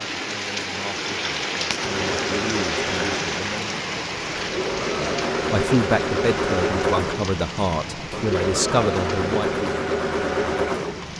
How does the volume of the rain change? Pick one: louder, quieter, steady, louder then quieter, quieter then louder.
quieter.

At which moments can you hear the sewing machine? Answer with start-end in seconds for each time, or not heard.
1.7-11.1.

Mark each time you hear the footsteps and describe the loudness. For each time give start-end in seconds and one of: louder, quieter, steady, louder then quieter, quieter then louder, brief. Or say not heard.
not heard.